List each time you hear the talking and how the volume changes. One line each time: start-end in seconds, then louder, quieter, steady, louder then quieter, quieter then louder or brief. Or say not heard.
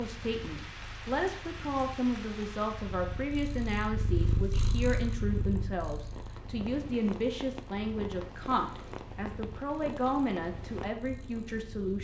0.0-11.9 steady.